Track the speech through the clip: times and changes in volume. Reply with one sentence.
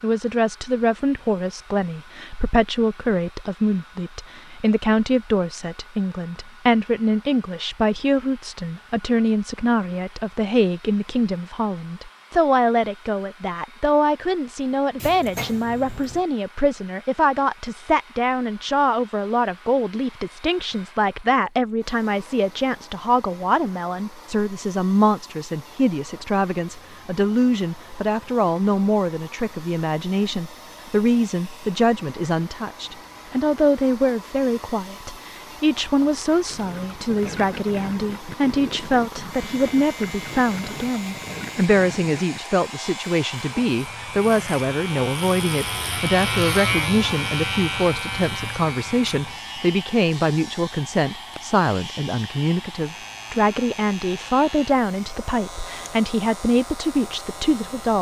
You can hear the speech from 0.0 to 57.9 s, at a steady volume.